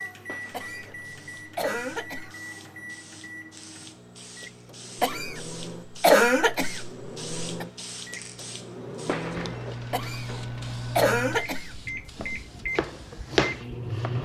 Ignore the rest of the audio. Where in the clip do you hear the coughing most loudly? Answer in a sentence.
The volume of the coughing peaks at 6 seconds.